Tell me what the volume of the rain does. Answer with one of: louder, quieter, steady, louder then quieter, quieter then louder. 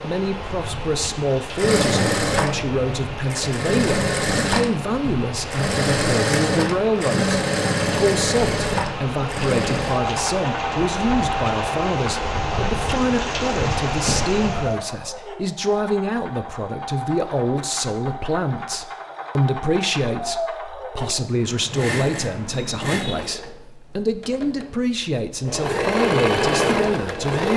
louder.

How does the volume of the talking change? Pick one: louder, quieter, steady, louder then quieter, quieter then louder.
steady.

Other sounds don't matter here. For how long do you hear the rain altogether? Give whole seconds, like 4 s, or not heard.
15 s.